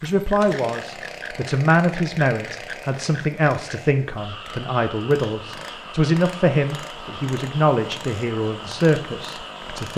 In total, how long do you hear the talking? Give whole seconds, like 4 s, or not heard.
10 s.